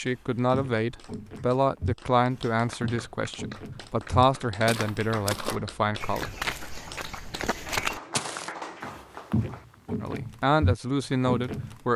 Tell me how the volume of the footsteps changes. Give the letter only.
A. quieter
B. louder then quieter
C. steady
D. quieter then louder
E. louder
E.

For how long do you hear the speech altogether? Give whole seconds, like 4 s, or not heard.
8 s.